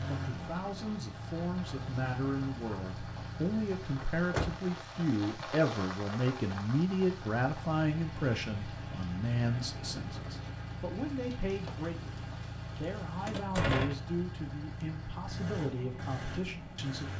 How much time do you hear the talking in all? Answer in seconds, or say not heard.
17 s.